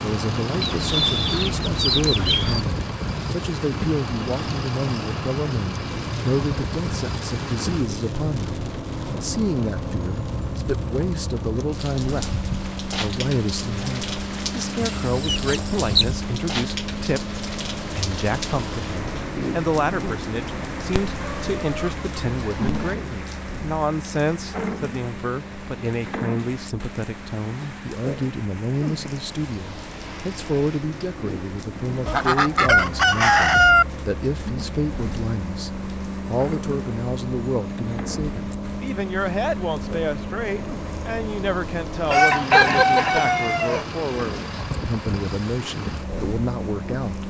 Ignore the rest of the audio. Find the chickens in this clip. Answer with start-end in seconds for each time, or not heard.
0.6-2.6, 14.8-16.1, 21.1-22.9, 32.0-33.9, 42.1-43.9.